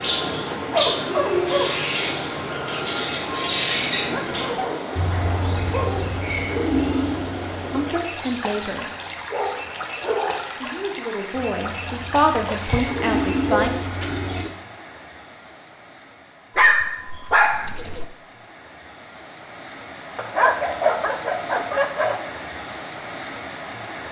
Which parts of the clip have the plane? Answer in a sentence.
The plane can't be heard in this clip.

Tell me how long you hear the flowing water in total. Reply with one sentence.
The flowing water can be heard for 24 seconds in total.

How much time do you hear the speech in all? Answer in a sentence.
The speech can be heard for 4 seconds in total.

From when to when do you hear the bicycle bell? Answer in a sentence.
The bicycle bell can't be heard in this clip.